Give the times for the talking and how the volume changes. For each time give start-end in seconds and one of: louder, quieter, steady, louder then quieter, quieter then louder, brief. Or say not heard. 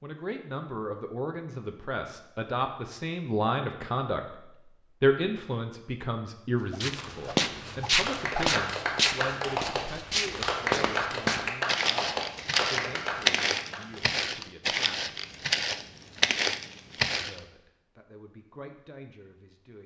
0.0-4.2 louder
5.0-15.2 quieter
17.2-19.8 brief.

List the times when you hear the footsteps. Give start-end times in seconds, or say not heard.
6.7-17.4.